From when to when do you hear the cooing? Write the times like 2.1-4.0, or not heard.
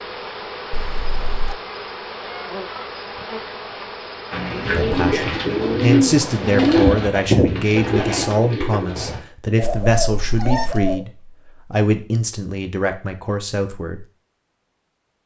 4.3-11.0.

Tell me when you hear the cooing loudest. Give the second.
7 s.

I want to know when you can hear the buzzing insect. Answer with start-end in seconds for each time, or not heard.
0.0-6.7.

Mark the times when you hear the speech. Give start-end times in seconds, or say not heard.
4.7-14.1.